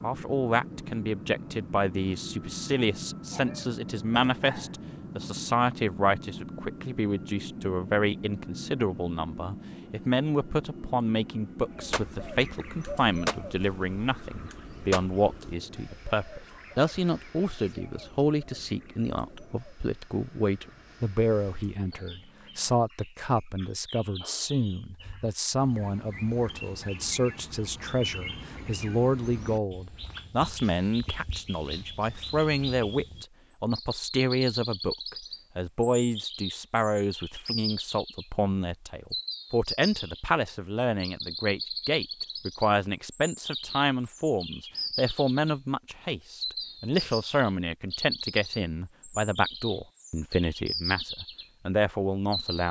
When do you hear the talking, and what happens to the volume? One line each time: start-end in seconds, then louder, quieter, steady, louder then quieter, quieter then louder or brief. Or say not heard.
0.0-52.6 steady.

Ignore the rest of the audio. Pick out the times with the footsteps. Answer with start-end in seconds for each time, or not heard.
not heard.